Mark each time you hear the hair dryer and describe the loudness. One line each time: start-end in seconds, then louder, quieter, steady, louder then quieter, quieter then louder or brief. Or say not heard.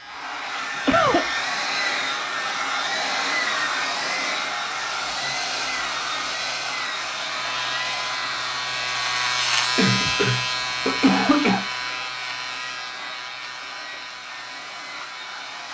0.0-15.6 quieter.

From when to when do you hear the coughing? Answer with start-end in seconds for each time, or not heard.
0.8-1.2, 9.8-11.7.